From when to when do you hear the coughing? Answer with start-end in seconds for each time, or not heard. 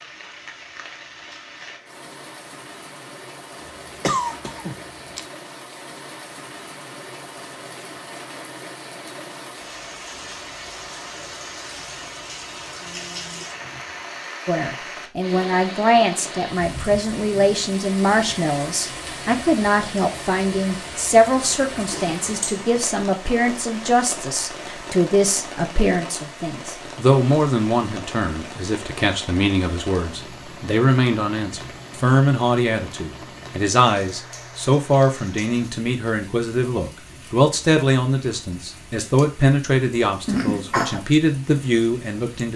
3.6-5.2, 21.9-22.6, 40.2-41.0.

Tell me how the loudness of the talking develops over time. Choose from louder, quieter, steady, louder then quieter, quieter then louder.
steady.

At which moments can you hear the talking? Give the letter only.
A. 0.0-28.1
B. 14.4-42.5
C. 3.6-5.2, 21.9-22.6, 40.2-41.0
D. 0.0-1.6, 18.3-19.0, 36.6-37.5
B.